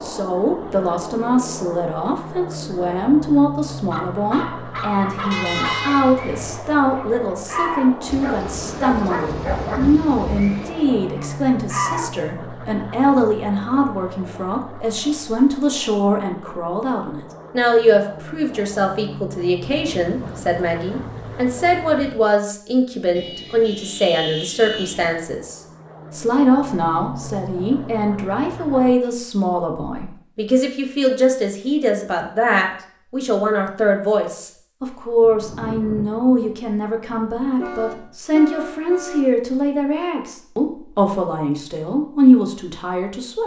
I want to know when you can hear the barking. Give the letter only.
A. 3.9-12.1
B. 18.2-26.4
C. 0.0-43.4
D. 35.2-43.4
A.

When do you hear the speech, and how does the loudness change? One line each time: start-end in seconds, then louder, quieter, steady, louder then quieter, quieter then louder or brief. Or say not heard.
0.0-43.4 steady.